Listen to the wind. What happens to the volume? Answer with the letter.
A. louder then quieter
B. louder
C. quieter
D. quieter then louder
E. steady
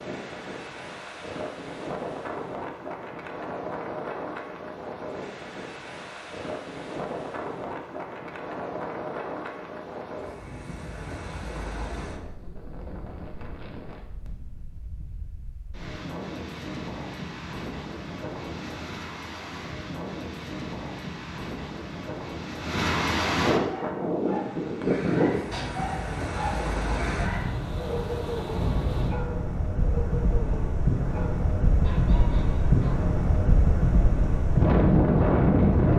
B.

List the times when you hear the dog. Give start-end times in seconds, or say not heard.
23.6-33.0.